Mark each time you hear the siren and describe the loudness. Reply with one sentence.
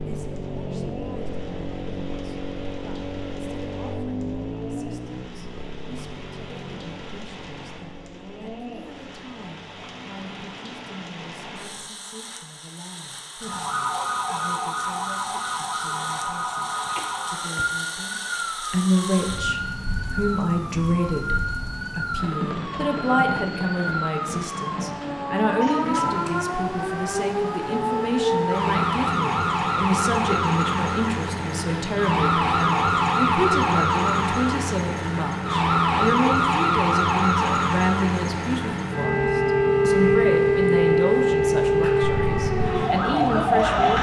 You can hear the siren from 13.4 to 43.9 s, getting louder.